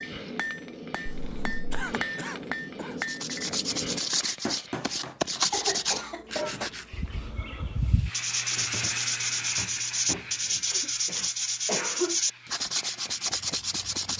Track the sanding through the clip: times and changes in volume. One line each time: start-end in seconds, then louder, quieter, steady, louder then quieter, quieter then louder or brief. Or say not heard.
3.0-14.1 steady.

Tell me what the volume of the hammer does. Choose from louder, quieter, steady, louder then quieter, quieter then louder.
steady.